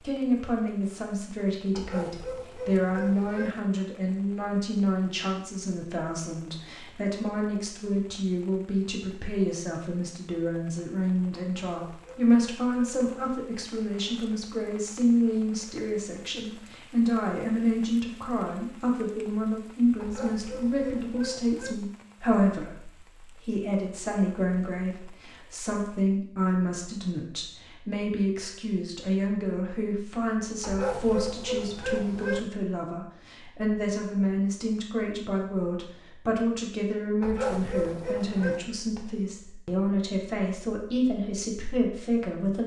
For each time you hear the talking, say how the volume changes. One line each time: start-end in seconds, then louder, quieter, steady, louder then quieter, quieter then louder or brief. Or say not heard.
0.0-42.6 steady.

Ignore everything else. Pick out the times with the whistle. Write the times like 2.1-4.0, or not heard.
not heard.